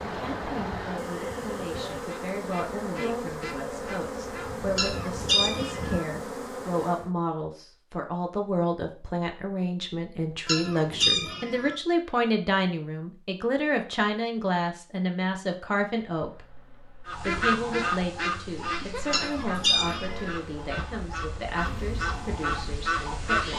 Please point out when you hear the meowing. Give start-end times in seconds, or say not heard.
4.8-6.0, 10.4-11.8, 19.1-20.4.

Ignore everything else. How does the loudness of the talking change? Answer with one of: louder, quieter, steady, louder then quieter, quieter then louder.
louder then quieter.